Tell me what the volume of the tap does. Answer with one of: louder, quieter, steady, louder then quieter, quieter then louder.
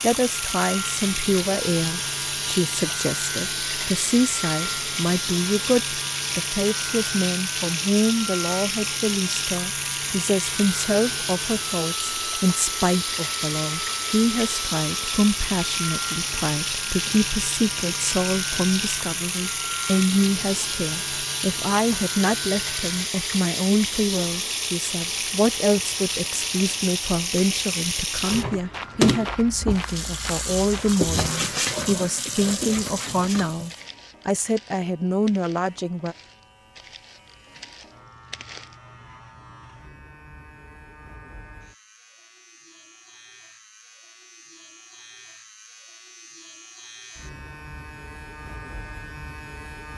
steady.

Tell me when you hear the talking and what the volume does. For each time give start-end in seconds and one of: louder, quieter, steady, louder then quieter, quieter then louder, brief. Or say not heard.
0.0-36.1 steady.